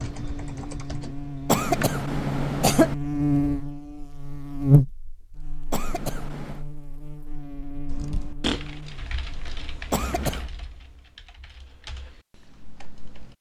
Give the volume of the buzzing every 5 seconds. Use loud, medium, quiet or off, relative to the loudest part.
loud, quiet, off.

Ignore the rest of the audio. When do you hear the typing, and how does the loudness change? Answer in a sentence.
You can hear the typing briefly from 0.0 to 2.0 s; and from 7.8 to 13.3 s, getting quieter.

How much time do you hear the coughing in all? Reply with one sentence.
You can hear the coughing for 3 seconds altogether.